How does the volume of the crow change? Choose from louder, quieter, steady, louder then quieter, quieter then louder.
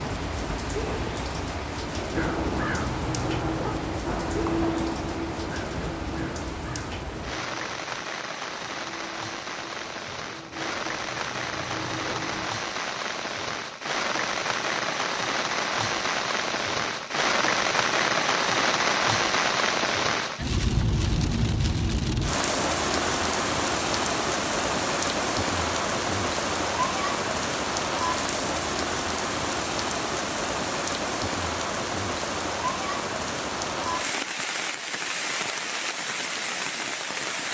quieter then louder.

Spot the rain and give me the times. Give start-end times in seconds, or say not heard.
0.0-37.5.